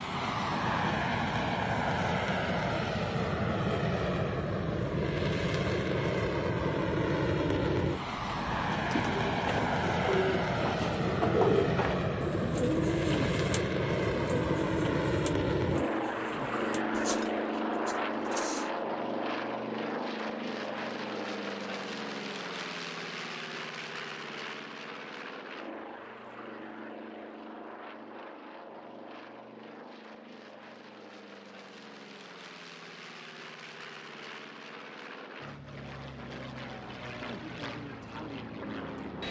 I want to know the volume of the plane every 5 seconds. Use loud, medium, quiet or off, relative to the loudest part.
loud, loud, loud, loud, medium, quiet, quiet, medium.